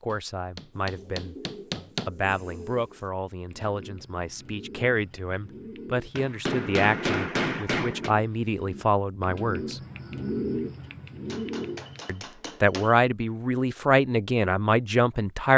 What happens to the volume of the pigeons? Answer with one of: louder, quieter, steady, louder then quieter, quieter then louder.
louder.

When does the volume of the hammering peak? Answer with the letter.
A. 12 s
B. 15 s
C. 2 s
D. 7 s
D.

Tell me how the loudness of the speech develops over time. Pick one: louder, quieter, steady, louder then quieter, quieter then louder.
louder.